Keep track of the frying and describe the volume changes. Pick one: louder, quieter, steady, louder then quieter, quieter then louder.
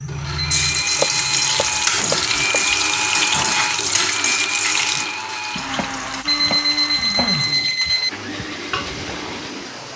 quieter.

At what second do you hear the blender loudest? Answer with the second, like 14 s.
3 s.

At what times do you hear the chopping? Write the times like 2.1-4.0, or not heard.
0.9-2.6, 5.5-7.4.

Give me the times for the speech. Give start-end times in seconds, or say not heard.
not heard.